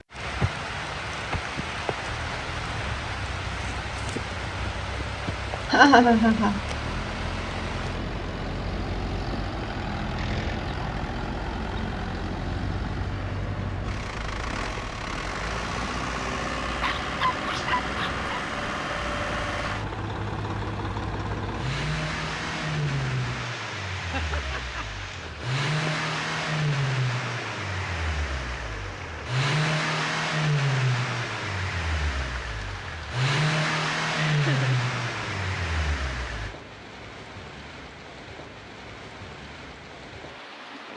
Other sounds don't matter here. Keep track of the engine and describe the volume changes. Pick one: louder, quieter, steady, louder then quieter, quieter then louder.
louder.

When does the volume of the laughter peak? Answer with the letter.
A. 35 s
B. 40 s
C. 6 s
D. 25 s
C.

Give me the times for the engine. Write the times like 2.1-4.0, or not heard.
2.0-36.5.